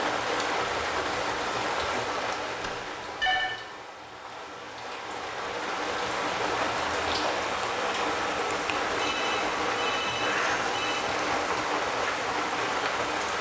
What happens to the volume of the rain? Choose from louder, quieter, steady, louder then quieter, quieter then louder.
quieter then louder.